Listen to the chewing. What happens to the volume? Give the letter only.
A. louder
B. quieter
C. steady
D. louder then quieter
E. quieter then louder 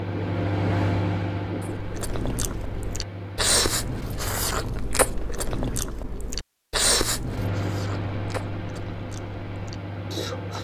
B.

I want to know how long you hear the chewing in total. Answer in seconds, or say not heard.
9 s.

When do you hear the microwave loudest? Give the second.
1 s.